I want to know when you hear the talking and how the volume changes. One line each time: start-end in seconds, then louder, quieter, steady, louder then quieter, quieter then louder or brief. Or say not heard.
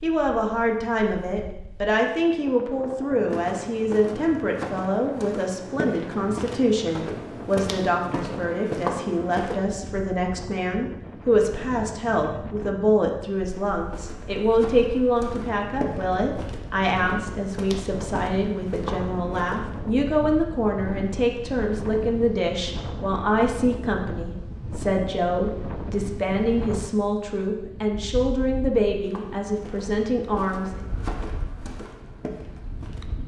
0.0-30.9 steady.